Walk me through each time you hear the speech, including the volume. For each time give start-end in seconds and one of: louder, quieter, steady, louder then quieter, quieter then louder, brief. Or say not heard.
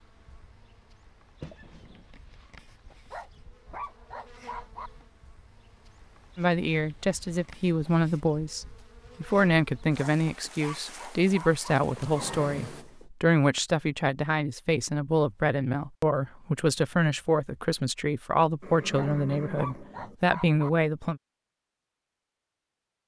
6.3-21.2 steady.